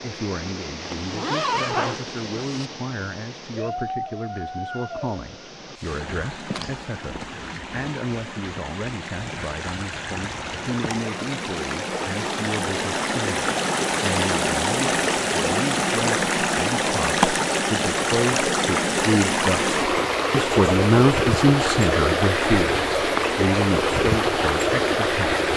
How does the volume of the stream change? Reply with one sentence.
The volume of the stream goes up.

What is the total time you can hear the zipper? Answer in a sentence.
The zipper can be heard for 2 seconds in total.